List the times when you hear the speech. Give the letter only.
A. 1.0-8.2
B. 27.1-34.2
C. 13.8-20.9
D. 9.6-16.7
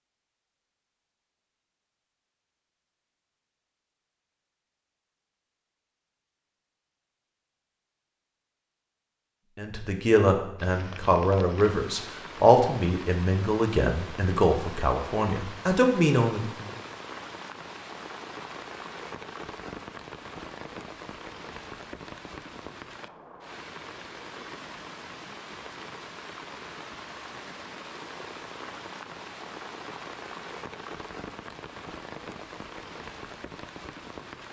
D.